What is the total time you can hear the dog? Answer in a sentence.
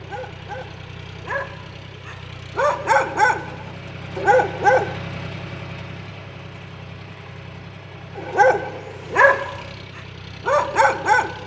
You can hear the dog for 8 seconds altogether.